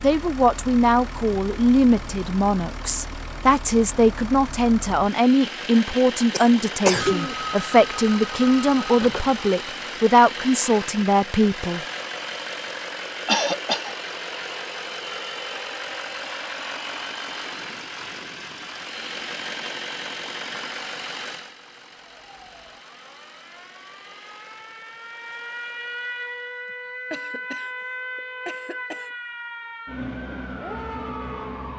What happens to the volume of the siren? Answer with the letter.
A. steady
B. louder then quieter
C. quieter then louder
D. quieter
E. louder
E.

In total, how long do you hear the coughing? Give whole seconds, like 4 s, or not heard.
4 s.